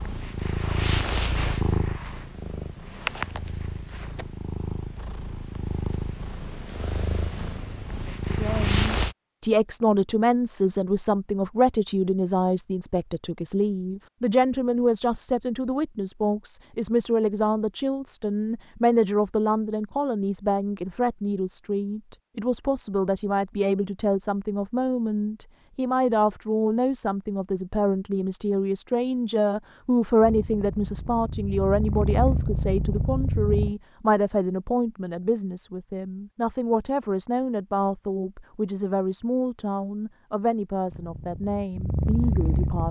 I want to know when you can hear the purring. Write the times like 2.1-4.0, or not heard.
0.0-9.2, 30.2-33.8, 40.9-42.8.